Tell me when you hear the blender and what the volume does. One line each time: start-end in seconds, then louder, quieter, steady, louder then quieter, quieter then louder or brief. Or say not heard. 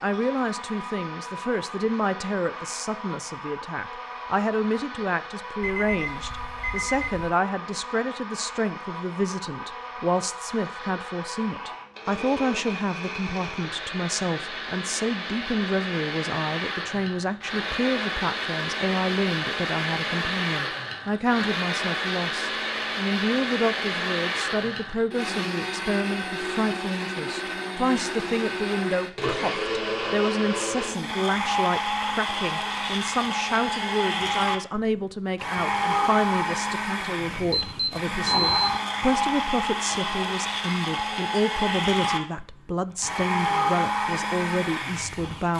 0.0-45.5 louder.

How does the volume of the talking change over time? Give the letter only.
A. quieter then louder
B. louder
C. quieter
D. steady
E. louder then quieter
D.